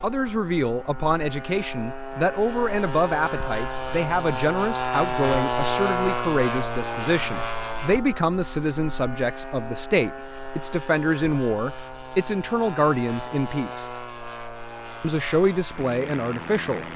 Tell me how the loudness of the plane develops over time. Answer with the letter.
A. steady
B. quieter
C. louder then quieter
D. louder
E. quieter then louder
C.